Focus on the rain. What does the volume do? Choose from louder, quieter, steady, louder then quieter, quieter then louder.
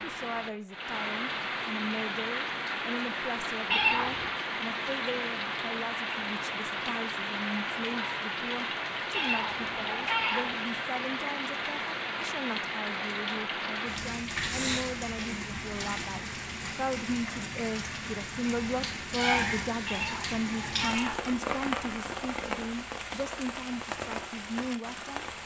steady.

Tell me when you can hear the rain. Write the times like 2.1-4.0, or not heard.
0.0-25.4.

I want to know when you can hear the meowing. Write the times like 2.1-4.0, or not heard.
3.7-4.4, 9.1-10.6, 19.9-21.3.